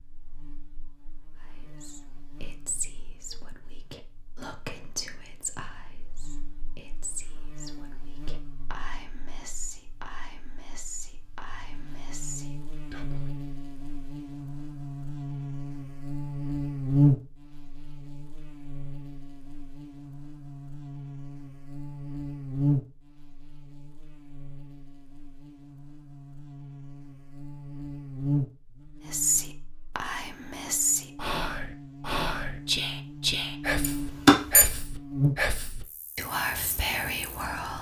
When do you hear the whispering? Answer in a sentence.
The whispering can be heard from 1.8 to 13.3 s and from 29.1 to 37.7 s.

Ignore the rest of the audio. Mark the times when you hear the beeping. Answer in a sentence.
You can hear the beeping from 33.8 to 34.6 s.